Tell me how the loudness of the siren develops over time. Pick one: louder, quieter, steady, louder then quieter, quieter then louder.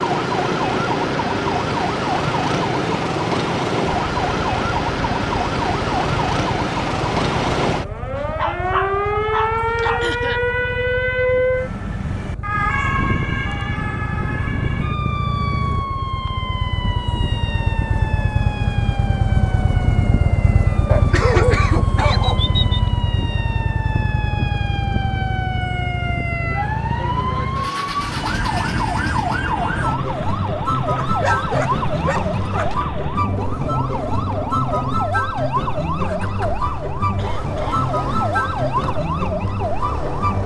quieter then louder.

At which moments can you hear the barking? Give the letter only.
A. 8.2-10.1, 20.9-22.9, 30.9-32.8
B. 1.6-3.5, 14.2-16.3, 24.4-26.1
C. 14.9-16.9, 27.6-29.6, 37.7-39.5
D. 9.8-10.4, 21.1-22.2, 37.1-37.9
A.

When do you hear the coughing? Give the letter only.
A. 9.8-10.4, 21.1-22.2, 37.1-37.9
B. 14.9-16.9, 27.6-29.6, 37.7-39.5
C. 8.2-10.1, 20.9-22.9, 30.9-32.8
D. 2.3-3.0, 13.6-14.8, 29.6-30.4
A.